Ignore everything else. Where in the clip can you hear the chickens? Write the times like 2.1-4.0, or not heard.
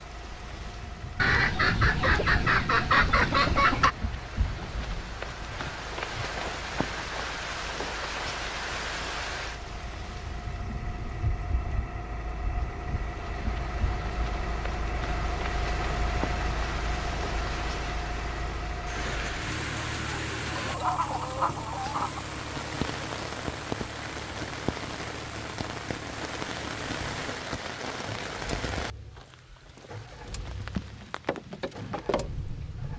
1.1-4.0, 20.6-22.3.